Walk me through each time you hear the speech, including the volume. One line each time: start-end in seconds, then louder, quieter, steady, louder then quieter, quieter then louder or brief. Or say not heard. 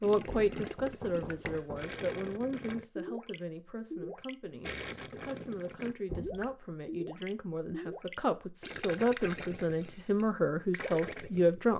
0.0-11.7 quieter then louder.